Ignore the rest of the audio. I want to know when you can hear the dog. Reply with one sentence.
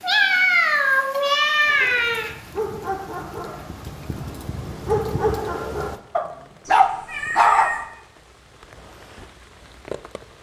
You can hear the dog from 1.6 to 7.7 s.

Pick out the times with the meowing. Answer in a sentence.
You can hear the meowing from 0.0 to 2.3 s and from 6.7 to 7.8 s.